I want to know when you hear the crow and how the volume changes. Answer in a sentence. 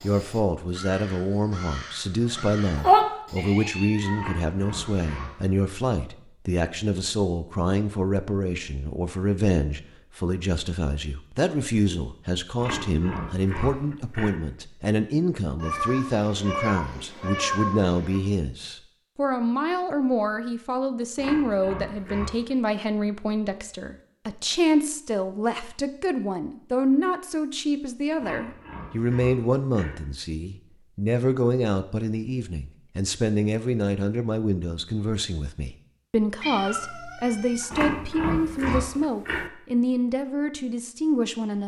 You can hear the crow from 0.0 to 5.3 s, getting louder then quieter.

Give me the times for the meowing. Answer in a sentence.
You can hear the meowing from 3.4 to 4.3 s, from 15.6 to 18.2 s and from 36.4 to 37.6 s.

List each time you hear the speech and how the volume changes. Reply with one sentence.
The speech can be heard from 0.0 to 41.6 s, at a steady volume.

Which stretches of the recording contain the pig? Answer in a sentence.
You can hear the pig from 4.2 to 5.5 s, from 12.6 to 14.4 s, from 21.1 to 22.6 s, from 28.1 to 30.0 s and from 37.7 to 39.5 s.